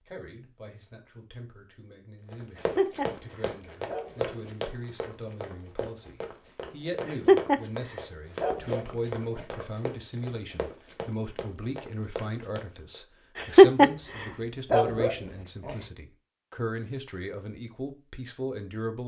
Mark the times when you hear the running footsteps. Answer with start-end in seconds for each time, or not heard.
2.3-13.0.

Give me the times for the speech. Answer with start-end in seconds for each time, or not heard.
0.0-19.0.